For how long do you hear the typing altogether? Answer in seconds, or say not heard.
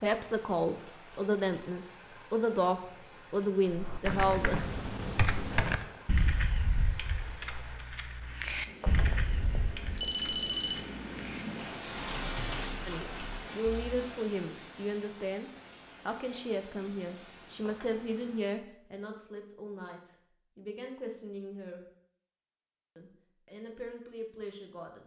10 s.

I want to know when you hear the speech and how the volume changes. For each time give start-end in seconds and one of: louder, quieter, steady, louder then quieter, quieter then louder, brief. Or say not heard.
0.0-4.6 steady
12.8-21.8 quieter
22.9-25.0 brief.